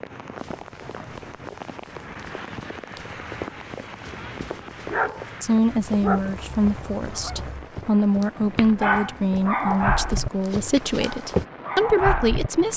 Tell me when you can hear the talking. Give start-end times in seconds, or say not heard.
5.4-12.7.